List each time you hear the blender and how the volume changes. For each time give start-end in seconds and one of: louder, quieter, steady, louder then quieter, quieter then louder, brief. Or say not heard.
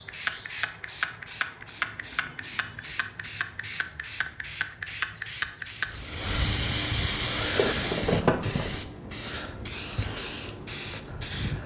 not heard.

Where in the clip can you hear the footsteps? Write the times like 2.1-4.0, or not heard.
7.4-8.8.